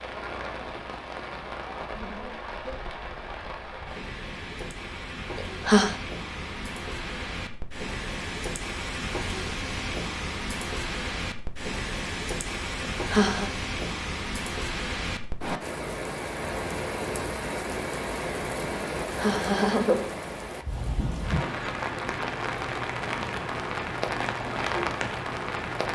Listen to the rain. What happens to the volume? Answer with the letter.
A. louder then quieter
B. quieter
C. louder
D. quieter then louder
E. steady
C.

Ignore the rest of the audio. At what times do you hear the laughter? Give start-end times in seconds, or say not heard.
5.3-6.0, 12.8-13.5, 19.1-20.1.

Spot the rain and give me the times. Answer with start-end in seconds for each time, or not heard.
0.0-25.9.